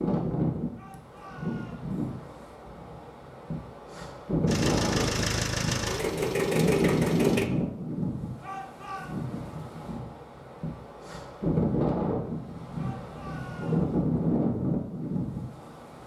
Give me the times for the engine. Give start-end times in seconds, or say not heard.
4.5-7.5.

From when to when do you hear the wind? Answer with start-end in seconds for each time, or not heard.
0.0-16.0.